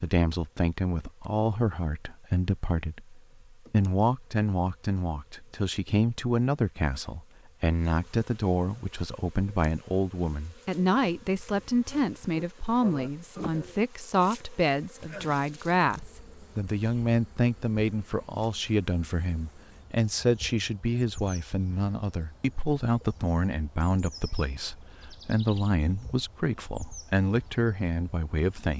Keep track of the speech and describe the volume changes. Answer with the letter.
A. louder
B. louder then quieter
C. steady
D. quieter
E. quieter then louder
C.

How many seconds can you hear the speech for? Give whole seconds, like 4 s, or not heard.
29 s.